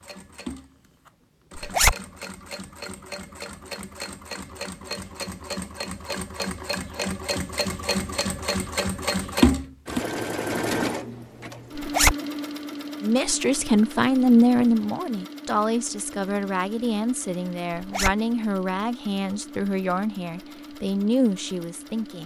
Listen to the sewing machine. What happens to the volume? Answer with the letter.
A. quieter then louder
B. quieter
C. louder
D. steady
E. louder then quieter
E.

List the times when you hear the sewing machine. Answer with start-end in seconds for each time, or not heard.
0.0-22.2.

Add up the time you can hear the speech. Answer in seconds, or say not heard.
9 s.